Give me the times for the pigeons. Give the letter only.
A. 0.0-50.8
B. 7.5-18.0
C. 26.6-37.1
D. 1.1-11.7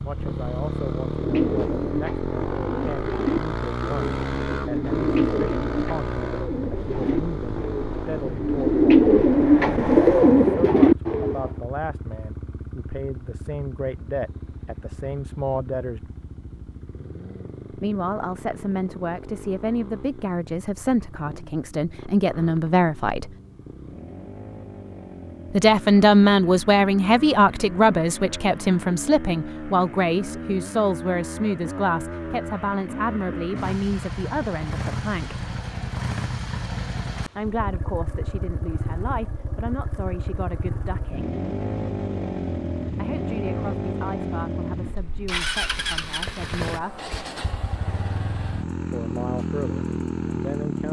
D.